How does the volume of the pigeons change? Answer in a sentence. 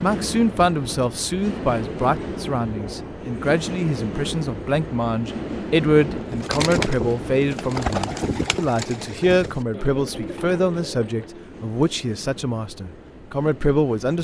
The volume of the pigeons goes down.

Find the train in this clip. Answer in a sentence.
The train can be heard from 0.0 to 14.1 s.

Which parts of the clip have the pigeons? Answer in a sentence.
The pigeons can be heard from 6.2 to 11.6 s.